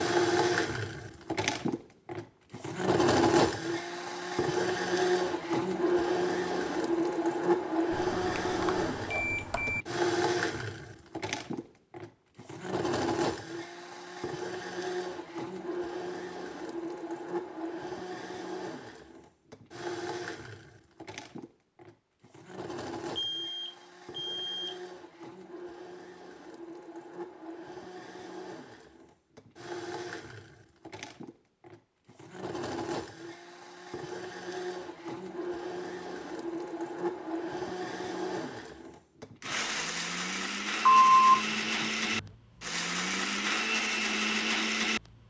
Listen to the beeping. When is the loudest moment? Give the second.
41 s.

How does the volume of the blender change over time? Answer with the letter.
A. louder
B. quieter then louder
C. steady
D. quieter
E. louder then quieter
B.